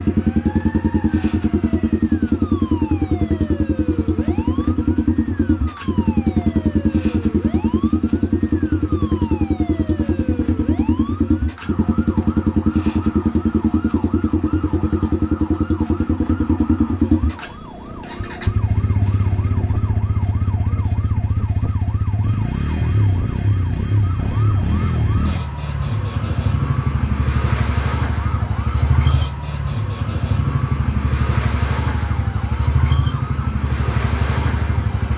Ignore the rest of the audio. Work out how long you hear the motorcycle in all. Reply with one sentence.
You can hear the motorcycle for 35 seconds altogether.